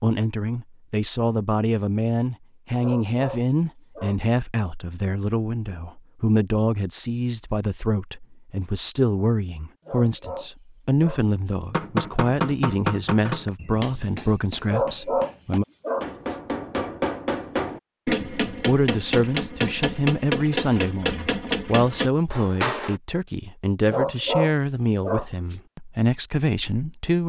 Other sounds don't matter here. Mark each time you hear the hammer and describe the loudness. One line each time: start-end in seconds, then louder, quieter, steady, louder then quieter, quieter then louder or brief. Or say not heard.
11.7-23.0 quieter then louder.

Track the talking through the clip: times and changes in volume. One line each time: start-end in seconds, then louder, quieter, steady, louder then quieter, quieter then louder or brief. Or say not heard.
0.0-15.7 steady
18.1-27.2 steady.